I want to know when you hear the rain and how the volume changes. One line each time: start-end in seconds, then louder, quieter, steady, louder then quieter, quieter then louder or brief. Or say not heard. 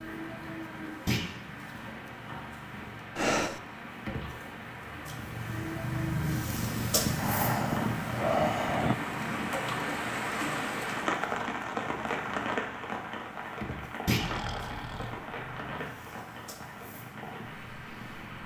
0.0-18.4 louder then quieter.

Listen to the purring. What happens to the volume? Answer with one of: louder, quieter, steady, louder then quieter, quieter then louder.
louder then quieter.